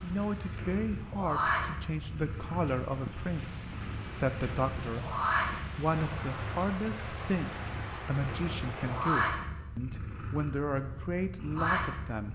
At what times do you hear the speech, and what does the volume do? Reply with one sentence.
You can hear the speech from 0.0 to 12.2 s, at a steady volume.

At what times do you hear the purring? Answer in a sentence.
You can hear the purring from 0.0 to 12.2 s.